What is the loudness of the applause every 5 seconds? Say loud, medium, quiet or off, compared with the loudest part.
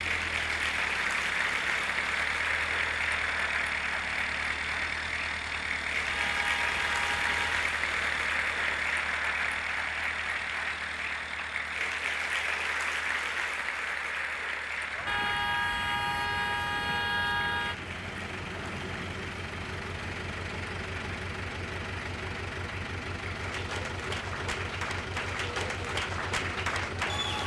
loud, loud, loud, medium, medium, loud.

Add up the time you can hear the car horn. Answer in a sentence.
You can hear the car horn for 4 seconds altogether.